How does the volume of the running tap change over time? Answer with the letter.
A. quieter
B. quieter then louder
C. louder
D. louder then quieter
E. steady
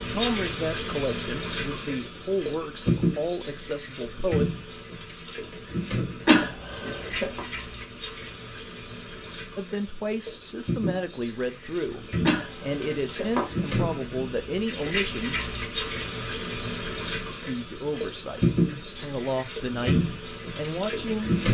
B.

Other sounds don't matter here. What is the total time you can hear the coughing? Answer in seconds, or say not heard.
2 s.